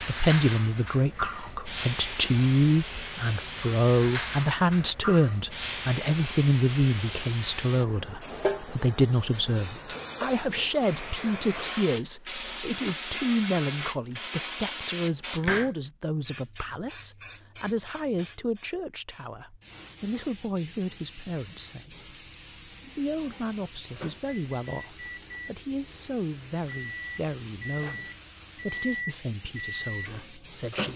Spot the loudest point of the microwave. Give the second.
29 s.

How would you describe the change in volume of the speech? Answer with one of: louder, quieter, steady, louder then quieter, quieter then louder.
quieter.